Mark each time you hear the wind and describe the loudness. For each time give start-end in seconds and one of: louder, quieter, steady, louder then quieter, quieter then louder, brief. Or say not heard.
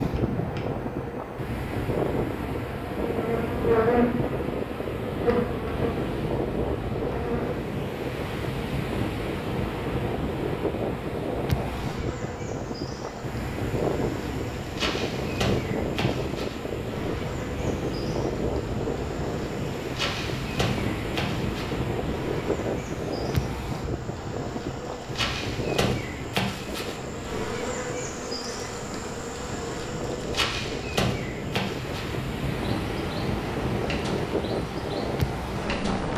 0.0-36.1 steady.